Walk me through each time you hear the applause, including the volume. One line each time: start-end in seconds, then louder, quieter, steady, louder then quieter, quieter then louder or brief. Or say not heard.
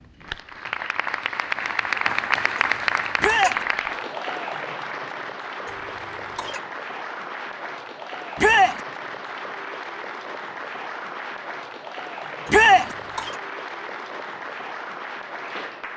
0.0-15.9 quieter.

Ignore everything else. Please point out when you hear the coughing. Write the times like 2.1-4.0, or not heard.
2.5-3.5, 5.7-6.6, 12.4-13.4.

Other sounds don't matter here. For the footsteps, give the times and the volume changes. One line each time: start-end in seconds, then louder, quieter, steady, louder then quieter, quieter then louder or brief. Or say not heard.
not heard.